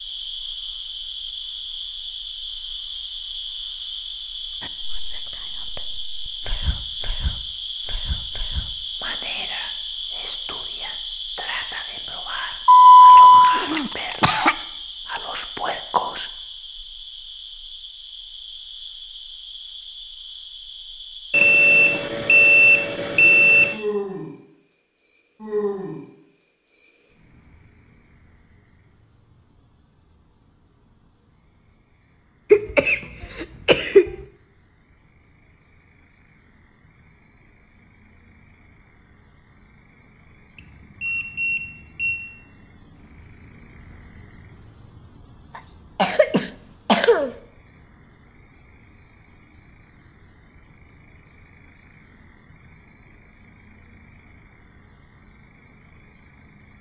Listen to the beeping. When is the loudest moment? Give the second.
13 s.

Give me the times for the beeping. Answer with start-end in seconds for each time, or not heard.
12.7-13.6, 21.3-23.8, 40.5-42.2.